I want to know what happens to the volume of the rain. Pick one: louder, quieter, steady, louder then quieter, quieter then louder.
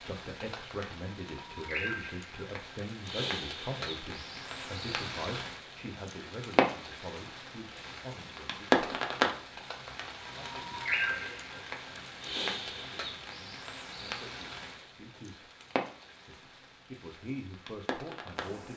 louder then quieter.